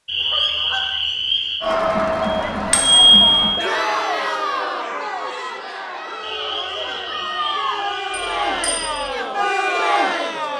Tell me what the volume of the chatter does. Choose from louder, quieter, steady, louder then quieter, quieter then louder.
quieter then louder.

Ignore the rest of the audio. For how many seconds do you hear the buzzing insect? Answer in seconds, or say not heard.
not heard.